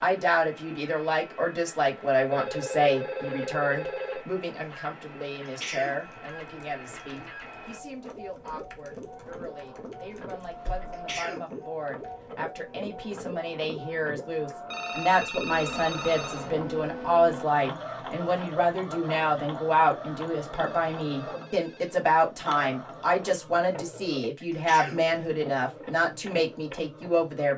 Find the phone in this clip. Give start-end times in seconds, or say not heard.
2.3-4.2, 14.7-16.5, 20.5-21.9.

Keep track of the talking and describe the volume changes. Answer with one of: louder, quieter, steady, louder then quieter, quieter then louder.
quieter then louder.